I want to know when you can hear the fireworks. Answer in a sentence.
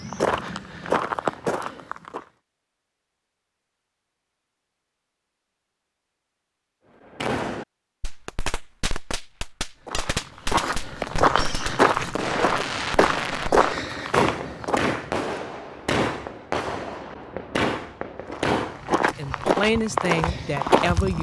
The fireworks can be heard from 7.1 to 18.9 s.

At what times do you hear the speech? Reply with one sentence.
The speech can be heard from 19.1 to 21.1 s.